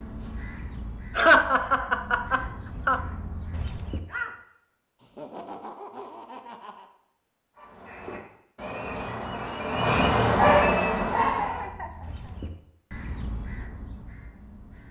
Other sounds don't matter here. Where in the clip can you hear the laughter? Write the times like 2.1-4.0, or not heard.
1.1-3.0, 5.0-6.8, 11.4-12.3.